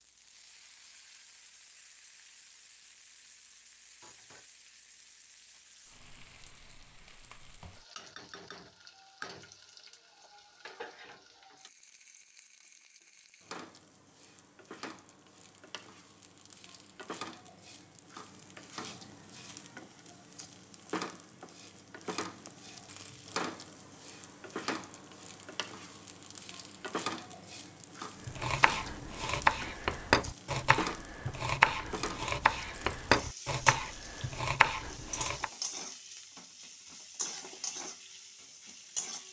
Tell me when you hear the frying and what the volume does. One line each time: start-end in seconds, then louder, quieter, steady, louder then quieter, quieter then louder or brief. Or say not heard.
0.0-39.2 louder.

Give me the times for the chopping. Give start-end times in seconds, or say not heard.
28.2-35.5.